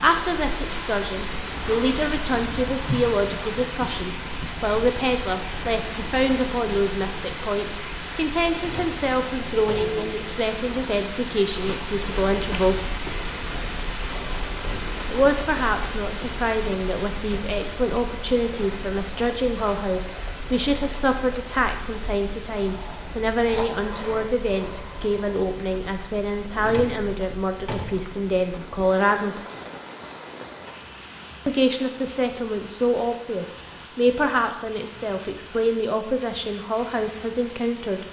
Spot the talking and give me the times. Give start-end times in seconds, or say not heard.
0.0-12.9, 15.1-29.4, 31.4-38.0.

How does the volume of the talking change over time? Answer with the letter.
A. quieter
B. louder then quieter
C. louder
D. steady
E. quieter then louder
D.